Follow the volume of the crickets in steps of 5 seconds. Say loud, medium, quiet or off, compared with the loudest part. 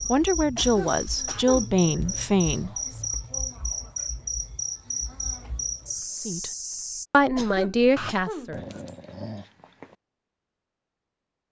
loud, loud, off.